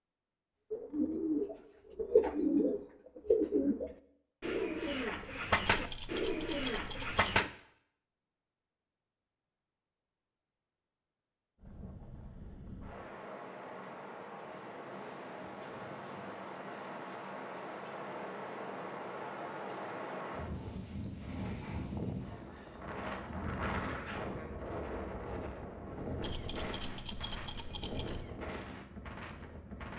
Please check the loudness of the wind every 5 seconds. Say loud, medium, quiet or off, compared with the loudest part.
off, off, medium, loud, loud, loud.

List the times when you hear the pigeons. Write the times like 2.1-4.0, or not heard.
0.7-7.5.